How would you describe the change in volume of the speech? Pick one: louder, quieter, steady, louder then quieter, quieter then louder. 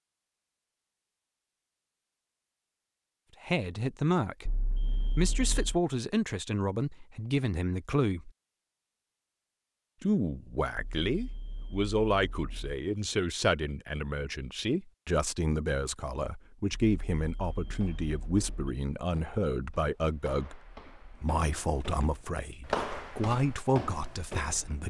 steady.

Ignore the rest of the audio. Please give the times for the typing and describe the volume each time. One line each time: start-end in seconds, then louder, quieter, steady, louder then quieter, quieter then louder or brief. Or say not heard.
not heard.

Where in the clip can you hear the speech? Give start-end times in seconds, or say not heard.
3.4-8.3, 10.0-24.8.